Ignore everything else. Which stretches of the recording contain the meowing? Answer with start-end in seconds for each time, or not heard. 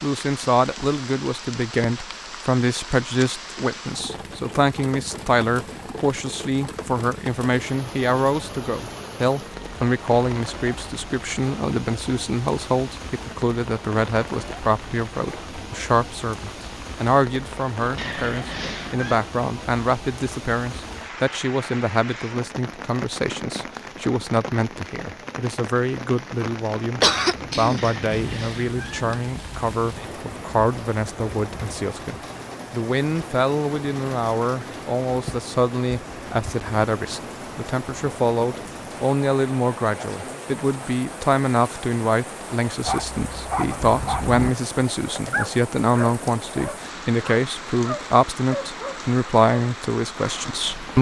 17.9-19.2, 27.8-29.2.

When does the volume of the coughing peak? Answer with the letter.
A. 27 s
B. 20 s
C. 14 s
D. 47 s
A.